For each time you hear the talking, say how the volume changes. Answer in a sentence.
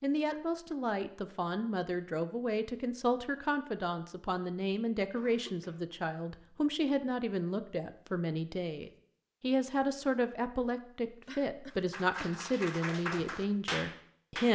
The talking can be heard from 0.0 to 14.5 s, at a steady volume.